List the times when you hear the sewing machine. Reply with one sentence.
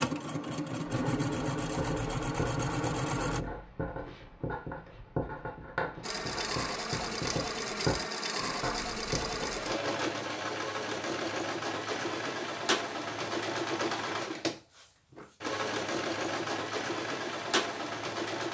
You can hear the sewing machine from 0.0 to 3.5 s and from 6.0 to 18.4 s.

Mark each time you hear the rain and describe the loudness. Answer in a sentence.
You can't hear the rain here.